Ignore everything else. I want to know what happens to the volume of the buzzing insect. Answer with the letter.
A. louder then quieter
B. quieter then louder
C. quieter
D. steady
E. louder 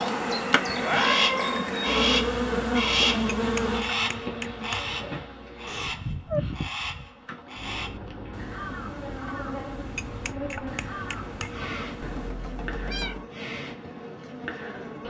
C.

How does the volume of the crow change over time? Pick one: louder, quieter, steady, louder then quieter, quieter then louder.
quieter.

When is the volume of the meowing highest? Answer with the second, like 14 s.
1 s.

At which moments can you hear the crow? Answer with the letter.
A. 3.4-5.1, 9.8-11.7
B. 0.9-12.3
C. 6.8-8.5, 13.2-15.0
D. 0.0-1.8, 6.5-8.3
B.